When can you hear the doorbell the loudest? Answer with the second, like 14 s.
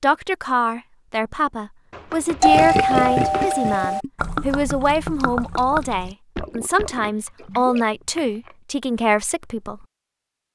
3 s.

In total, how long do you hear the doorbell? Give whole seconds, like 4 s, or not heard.
2 s.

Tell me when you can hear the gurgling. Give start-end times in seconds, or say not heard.
2.5-7.9.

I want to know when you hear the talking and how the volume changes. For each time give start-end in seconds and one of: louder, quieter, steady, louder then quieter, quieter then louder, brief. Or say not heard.
0.0-9.8 steady.